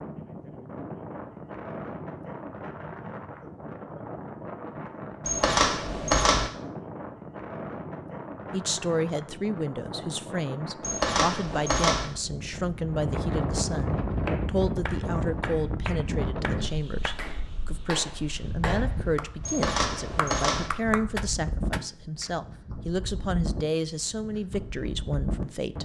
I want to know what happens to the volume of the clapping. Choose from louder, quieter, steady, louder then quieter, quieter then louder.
louder.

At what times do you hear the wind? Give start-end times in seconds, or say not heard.
0.0-25.8.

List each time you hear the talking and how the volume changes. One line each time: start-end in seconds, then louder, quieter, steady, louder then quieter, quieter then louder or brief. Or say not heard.
8.5-25.8 steady.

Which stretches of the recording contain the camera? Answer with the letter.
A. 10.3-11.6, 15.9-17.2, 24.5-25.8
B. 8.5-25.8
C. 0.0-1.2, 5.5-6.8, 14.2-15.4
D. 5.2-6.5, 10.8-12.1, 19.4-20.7
D.